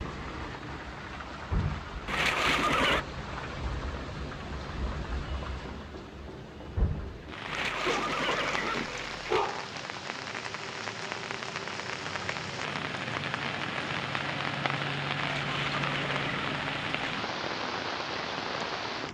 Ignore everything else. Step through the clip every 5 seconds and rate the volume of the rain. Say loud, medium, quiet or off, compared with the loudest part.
medium, medium, loud, loud.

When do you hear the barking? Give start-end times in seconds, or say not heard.
7.7-8.5, 9.2-9.8.